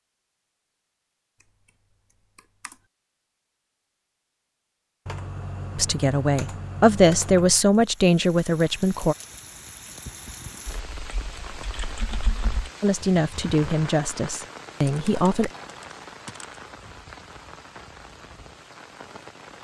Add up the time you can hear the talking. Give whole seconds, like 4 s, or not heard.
6 s.